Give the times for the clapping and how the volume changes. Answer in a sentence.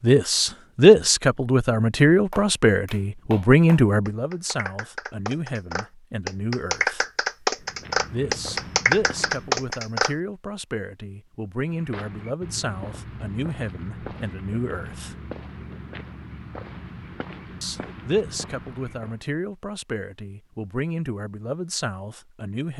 The clapping can be heard from 2.3 to 10.2 s, getting louder.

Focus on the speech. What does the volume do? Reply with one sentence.
The volume of the speech goes down.